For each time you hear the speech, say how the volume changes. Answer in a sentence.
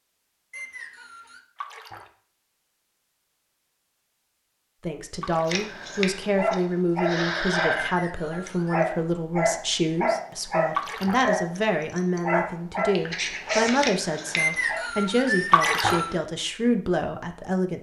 You can hear the speech from 4.8 to 17.7 s, at a steady volume.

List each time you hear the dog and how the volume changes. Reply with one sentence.
You can hear the dog from 5.5 to 14.8 s, at a steady volume.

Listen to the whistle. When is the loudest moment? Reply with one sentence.
The loudest moment of the whistle is at 15 seconds.